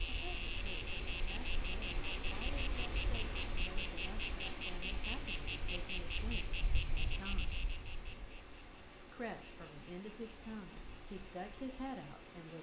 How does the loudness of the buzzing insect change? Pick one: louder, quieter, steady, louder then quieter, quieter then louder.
quieter.